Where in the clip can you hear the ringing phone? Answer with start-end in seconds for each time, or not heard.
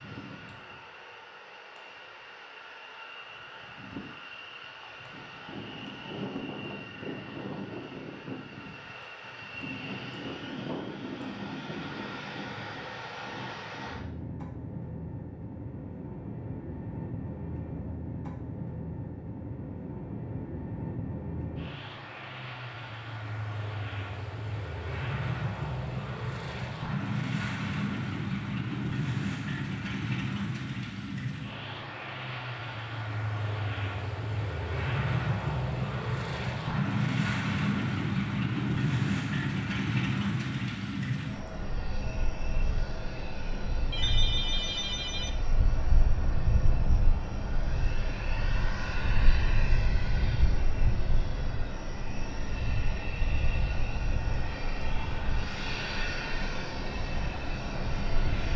43.9-45.3.